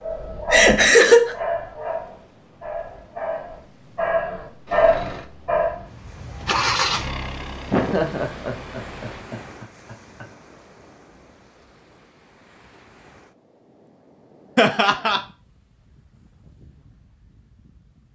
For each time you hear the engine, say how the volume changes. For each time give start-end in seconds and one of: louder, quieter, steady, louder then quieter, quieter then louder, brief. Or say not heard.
4.7-9.2 louder then quieter.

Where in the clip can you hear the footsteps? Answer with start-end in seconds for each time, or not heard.
not heard.